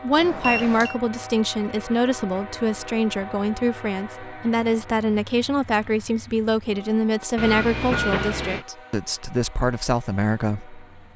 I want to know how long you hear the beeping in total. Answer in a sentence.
The beeping can be heard for 2 seconds in total.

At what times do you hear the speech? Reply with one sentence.
The speech can be heard from 0.0 to 10.8 s.